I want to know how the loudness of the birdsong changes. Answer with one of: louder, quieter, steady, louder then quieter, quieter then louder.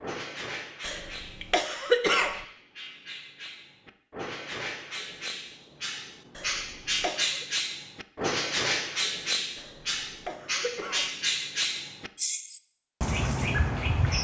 louder.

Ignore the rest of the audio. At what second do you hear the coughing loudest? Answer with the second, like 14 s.
2 s.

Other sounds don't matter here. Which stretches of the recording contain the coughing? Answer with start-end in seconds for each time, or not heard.
0.8-2.5, 6.3-7.5, 9.6-11.1.